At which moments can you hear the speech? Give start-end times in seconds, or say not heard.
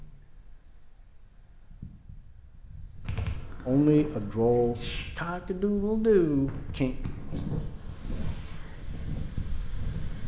3.6-7.0.